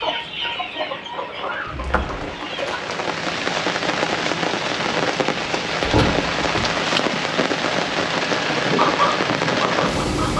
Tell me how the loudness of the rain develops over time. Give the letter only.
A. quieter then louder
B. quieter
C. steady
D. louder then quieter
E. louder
E.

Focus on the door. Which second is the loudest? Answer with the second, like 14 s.
6 s.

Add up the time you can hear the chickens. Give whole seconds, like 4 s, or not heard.
4 s.